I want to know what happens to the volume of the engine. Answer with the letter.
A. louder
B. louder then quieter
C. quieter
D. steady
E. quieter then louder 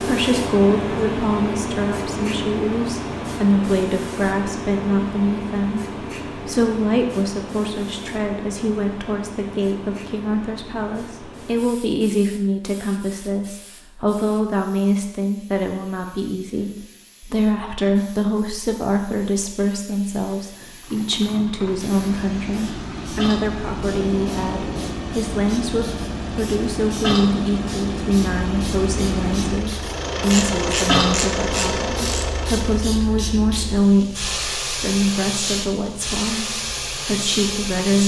A.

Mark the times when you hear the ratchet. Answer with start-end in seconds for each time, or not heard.
30.3-32.2.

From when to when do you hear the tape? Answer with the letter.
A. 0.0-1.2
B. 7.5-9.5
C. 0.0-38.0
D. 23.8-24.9
D.